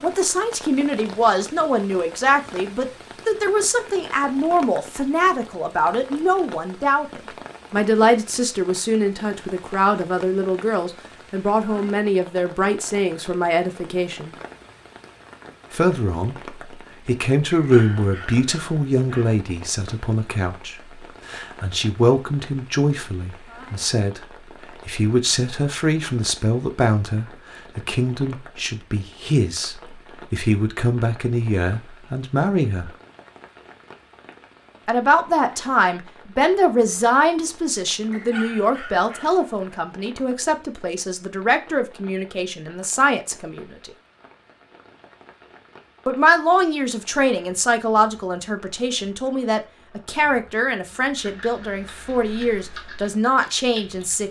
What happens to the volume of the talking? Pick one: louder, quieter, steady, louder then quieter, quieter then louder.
steady.